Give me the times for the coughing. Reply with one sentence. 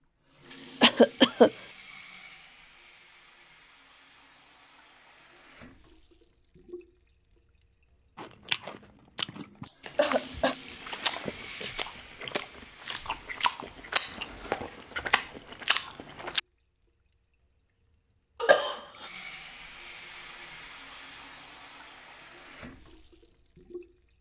The coughing can be heard from 0.8 to 1.5 s, from 9.6 to 10.6 s and from 18.4 to 18.8 s.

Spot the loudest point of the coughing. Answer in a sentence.
The volume of the coughing peaks at 1 second.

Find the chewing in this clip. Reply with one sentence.
The chewing can be heard from 8.2 to 16.4 s.